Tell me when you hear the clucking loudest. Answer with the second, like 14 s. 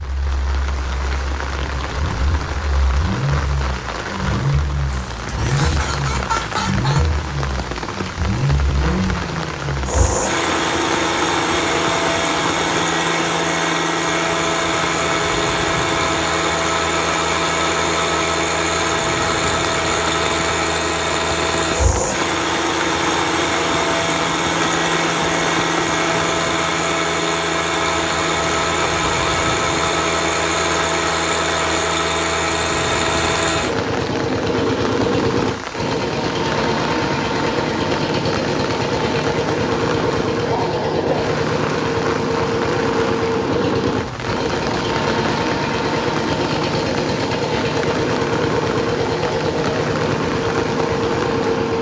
6 s.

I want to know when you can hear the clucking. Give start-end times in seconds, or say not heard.
4.9-7.0.